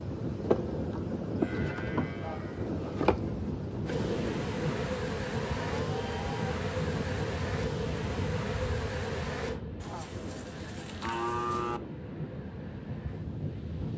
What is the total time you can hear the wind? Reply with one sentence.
The wind can be heard for 14 seconds in total.